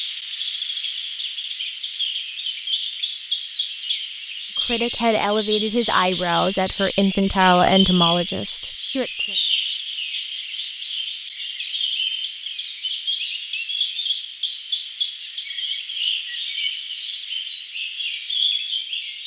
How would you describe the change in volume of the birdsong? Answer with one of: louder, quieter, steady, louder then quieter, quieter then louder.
steady.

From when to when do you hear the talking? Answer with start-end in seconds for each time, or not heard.
4.7-9.3.